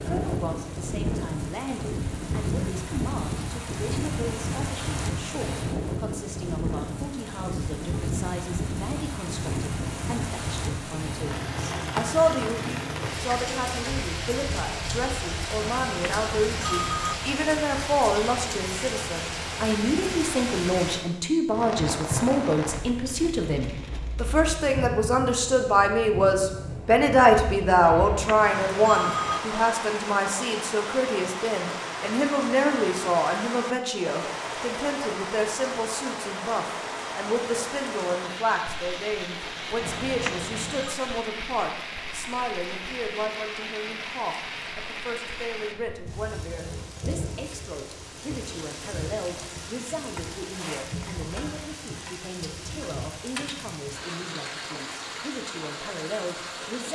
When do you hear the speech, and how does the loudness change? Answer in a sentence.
The speech can be heard from 0.0 to 56.8 s, getting louder then quieter.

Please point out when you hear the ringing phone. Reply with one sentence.
The ringing phone can be heard from 15.6 to 17.1 s, from 27.8 to 29.4 s and from 39.8 to 41.0 s.